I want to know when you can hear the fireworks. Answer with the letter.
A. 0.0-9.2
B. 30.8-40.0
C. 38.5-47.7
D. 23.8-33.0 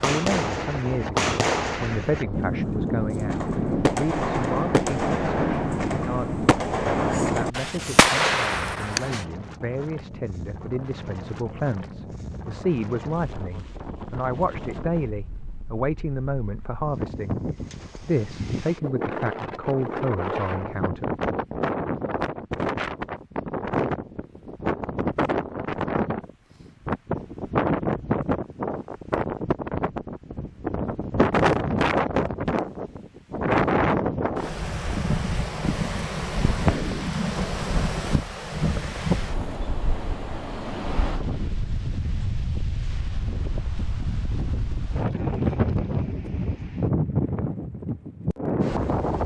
A.